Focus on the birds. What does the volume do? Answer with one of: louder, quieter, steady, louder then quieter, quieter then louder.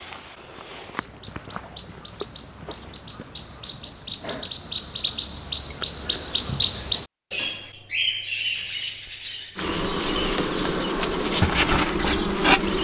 louder then quieter.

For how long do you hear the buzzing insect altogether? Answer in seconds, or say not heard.
3 s.